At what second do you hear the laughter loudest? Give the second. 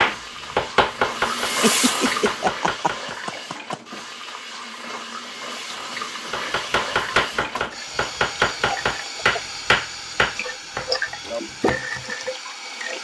2 s.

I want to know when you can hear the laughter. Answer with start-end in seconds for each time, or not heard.
1.4-3.8.